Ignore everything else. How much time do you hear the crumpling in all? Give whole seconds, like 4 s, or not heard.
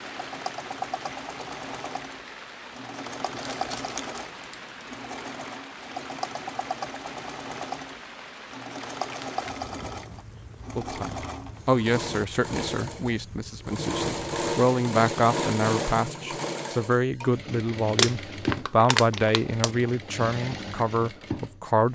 4 s.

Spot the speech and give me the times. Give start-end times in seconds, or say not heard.
10.8-21.8.